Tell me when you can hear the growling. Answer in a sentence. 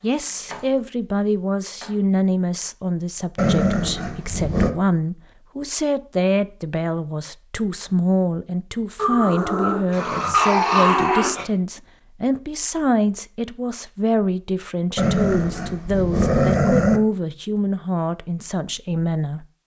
You can hear the growling from 3.4 to 4.7 s, from 8.9 to 11.4 s and from 14.9 to 17.0 s.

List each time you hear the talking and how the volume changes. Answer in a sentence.
The talking can be heard from 0.0 to 19.4 s, at a steady volume.